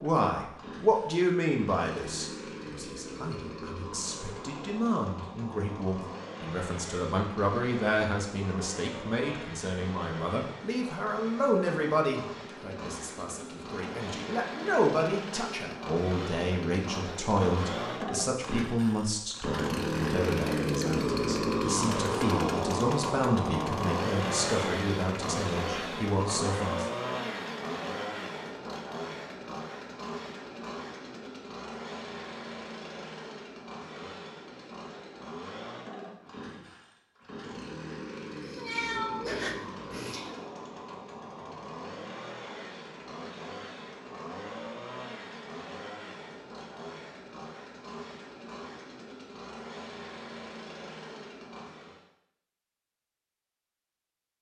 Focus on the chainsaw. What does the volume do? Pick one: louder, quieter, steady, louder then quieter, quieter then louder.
louder then quieter.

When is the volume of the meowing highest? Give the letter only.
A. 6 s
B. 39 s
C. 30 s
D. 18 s
B.